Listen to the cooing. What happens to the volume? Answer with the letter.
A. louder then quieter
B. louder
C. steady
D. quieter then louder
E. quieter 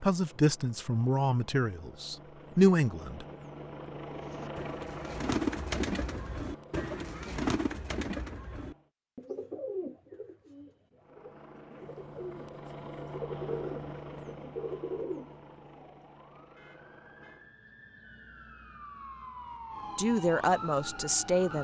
D.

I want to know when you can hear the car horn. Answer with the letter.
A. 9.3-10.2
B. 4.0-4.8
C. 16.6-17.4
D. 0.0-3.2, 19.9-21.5
C.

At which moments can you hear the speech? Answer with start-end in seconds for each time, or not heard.
0.0-3.2, 19.9-21.5.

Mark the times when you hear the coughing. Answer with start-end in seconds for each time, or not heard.
not heard.